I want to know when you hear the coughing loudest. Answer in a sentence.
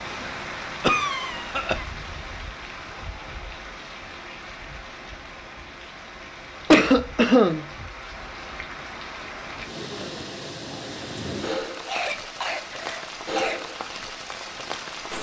The volume of the coughing peaks at 7 seconds.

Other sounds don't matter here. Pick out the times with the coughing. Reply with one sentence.
The coughing can be heard from 0.8 to 1.9 s, from 6.7 to 7.7 s and from 11.8 to 13.6 s.